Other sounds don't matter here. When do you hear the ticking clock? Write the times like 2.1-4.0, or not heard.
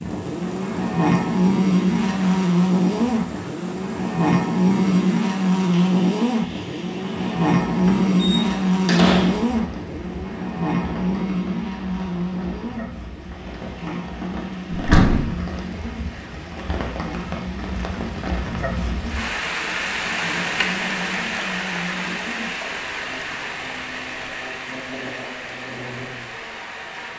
not heard.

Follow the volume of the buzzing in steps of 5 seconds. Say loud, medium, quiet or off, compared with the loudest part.
loud, loud, medium, quiet, quiet, quiet.